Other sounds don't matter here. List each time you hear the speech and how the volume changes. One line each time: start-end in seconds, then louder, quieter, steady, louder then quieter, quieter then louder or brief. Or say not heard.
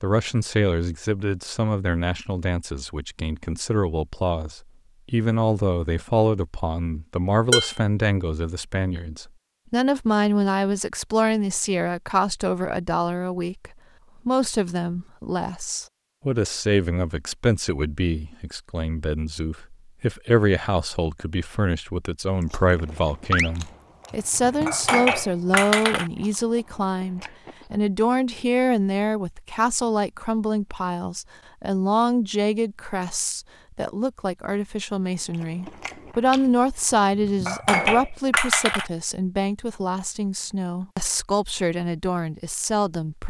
0.0-43.2 steady.